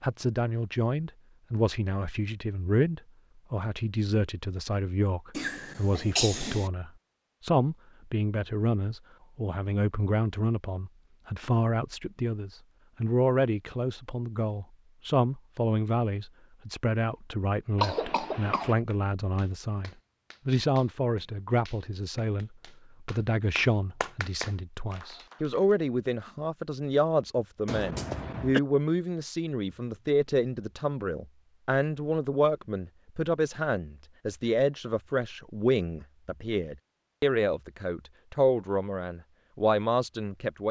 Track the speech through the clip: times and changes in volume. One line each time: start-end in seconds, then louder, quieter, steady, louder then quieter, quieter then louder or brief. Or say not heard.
0.0-40.6 steady.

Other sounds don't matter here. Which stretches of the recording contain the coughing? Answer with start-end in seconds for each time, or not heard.
5.3-6.7, 17.8-18.8, 27.6-28.6.